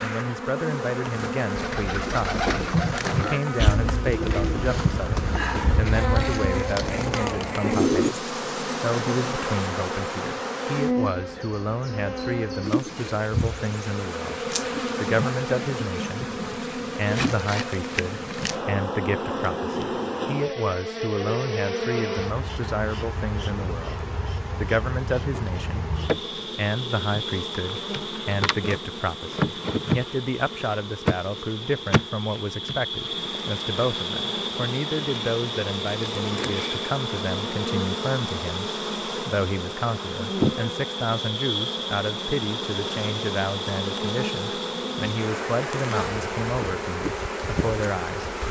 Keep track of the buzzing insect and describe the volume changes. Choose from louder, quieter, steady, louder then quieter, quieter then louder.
steady.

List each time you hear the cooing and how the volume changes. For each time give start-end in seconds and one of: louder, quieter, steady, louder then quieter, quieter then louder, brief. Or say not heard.
1.6-8.2 steady.